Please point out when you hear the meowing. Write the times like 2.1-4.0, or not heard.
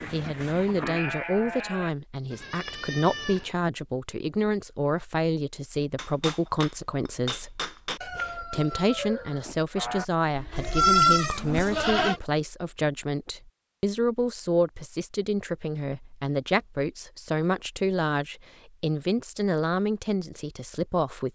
not heard.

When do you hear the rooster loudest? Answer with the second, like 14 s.
8 s.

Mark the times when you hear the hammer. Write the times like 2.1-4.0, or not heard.
6.0-8.0.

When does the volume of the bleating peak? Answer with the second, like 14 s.
11 s.